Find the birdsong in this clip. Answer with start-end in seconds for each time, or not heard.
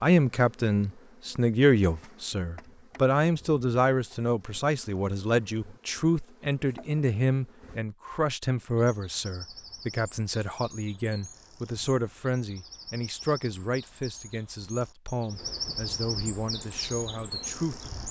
8.7-18.0.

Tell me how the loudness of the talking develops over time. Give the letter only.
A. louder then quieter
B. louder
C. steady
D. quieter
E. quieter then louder
D.